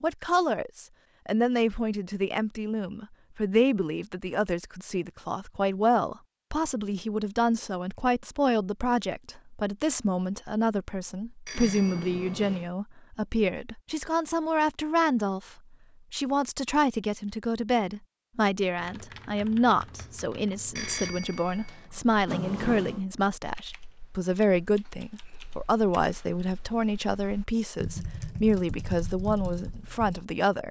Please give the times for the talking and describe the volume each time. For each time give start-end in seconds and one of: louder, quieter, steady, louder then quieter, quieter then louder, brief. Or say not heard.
0.0-15.5 steady
16.1-30.6 steady.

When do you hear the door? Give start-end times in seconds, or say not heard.
11.5-12.7, 22.2-23.1.